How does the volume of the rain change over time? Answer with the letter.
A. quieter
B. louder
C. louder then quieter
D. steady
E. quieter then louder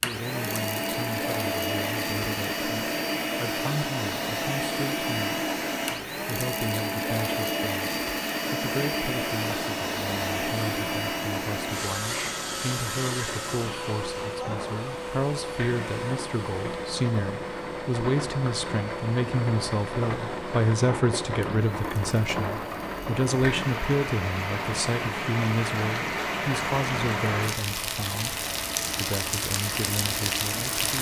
B.